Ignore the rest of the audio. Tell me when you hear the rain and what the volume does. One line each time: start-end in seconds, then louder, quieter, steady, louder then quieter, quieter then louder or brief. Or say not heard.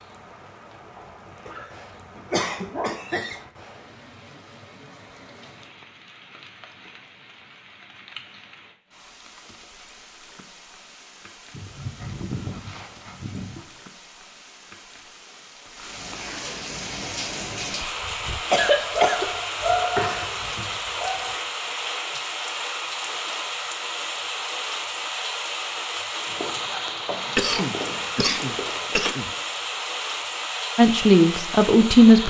0.0-32.2 louder.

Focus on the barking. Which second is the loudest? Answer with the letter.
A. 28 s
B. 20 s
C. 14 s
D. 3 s
B.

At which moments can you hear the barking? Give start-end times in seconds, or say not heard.
0.9-3.0, 11.5-13.7, 18.6-21.4, 26.2-29.0.